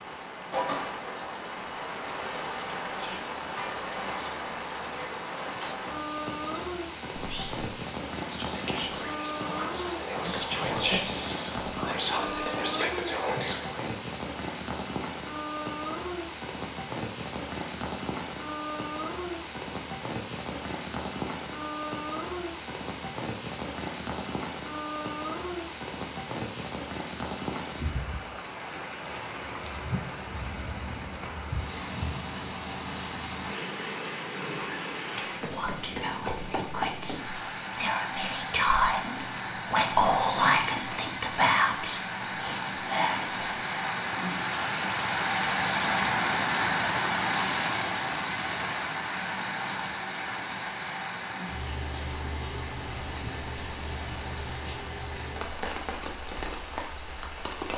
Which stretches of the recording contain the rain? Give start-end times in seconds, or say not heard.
0.0-57.7.